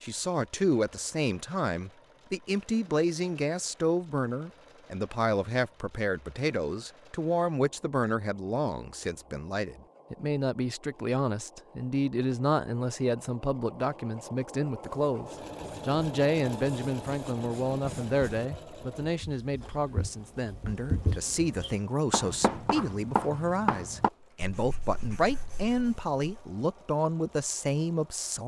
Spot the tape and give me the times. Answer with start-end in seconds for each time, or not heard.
not heard.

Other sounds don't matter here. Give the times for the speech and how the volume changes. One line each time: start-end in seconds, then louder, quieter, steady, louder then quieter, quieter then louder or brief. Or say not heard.
0.0-28.4 steady.